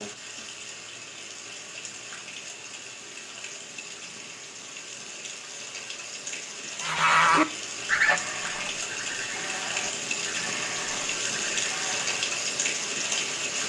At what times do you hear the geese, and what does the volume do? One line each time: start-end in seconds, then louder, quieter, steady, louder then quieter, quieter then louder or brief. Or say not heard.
6.8-12.2 quieter.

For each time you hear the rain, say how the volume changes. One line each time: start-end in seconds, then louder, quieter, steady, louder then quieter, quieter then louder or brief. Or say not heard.
0.0-13.6 louder.